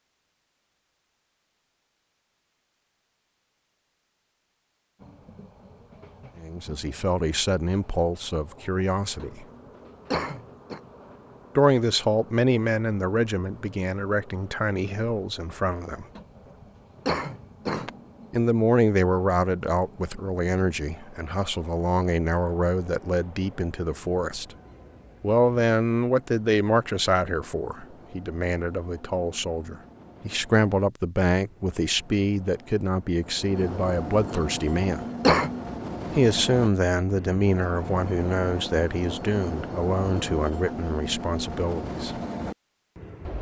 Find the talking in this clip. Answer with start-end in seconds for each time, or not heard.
6.4-9.4, 11.6-16.1, 18.3-24.5, 25.2-35.0, 36.1-42.1.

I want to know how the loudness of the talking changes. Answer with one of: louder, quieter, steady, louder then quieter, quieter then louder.
steady.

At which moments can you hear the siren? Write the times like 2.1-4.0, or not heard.
not heard.